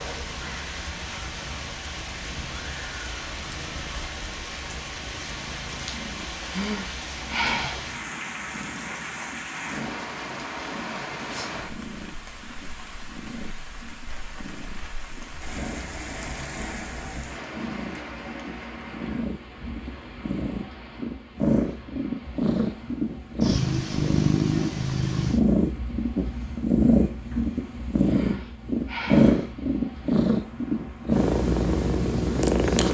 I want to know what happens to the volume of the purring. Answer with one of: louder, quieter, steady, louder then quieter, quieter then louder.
louder.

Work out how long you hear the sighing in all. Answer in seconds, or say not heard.
3 s.